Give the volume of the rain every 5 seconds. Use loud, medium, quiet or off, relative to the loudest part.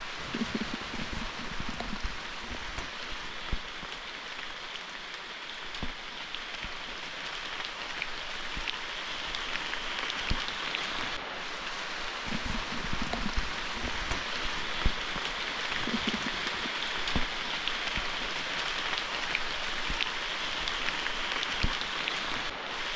medium, medium, loud, loud, loud.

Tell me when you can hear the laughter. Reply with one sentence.
The laughter can be heard from 0.1 to 1.1 s and from 15.7 to 17.1 s.